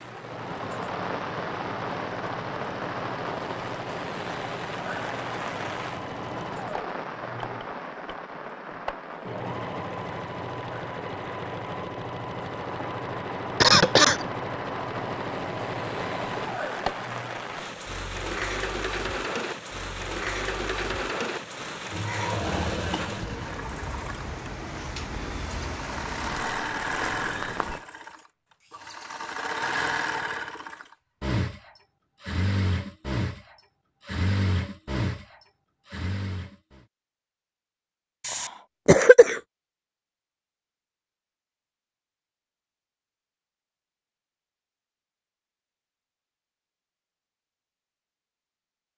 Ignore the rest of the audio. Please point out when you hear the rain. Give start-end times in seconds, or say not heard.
0.0-27.9.